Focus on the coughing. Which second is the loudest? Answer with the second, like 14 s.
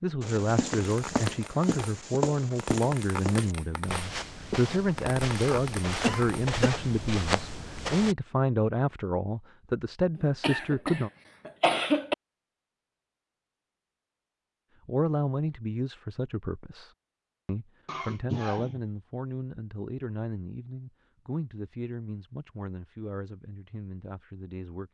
12 s.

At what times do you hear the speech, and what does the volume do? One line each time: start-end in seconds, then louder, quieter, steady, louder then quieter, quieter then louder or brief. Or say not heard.
0.0-11.1 steady
14.8-24.8 quieter.